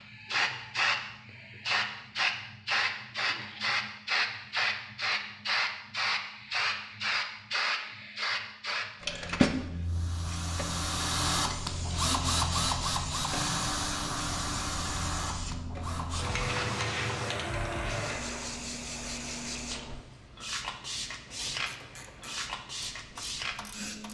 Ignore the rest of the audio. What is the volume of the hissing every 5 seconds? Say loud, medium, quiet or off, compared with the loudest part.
loud, loud, medium, medium, medium.